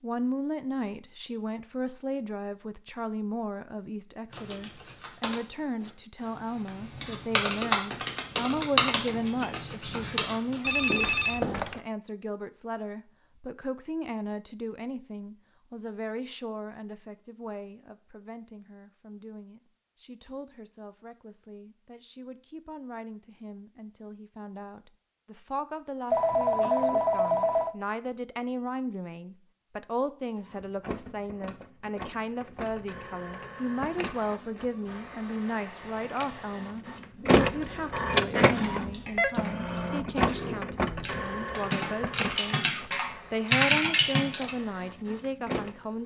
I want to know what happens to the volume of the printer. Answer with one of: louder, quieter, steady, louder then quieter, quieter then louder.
louder then quieter.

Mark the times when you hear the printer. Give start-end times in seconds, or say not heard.
30.4-46.0.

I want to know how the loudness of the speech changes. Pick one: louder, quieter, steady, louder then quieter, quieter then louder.
quieter then louder.